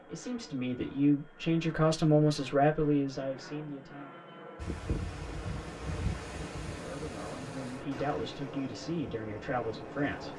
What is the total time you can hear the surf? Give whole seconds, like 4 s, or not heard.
6 s.